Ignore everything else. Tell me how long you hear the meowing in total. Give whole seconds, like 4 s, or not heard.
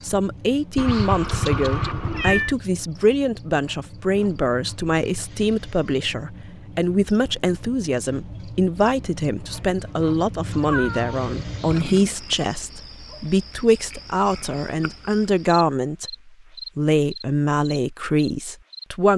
3 s.